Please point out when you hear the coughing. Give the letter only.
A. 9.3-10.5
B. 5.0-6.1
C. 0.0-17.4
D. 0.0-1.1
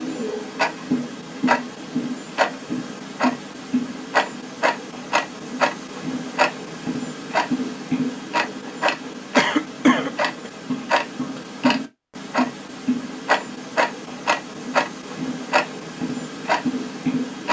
A.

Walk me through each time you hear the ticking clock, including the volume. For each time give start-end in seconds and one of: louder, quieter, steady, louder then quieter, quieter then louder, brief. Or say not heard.
0.0-17.4 steady.